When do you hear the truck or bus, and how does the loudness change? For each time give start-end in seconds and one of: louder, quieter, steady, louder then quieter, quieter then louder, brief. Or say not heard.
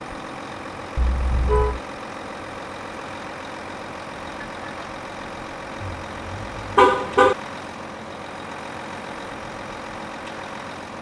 0.0-10.9 steady.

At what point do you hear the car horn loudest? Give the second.
7 s.